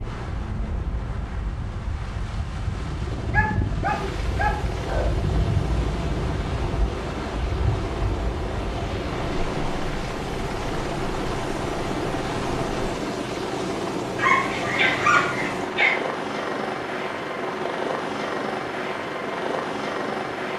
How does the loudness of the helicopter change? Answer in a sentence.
The loudness of the helicopter goes up.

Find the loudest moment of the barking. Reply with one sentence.
The volume of the barking peaks at 15 seconds.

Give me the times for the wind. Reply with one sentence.
You can hear the wind from 0.0 to 13.0 s.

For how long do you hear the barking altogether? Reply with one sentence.
You can hear the barking for 4 seconds altogether.